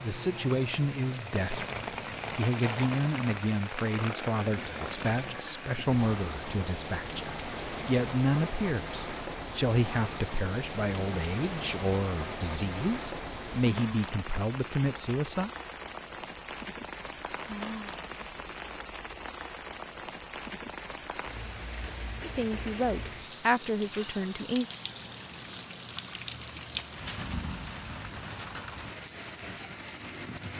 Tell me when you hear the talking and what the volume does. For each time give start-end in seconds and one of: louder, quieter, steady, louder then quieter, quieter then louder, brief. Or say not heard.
0.0-15.5 steady
22.2-24.6 brief.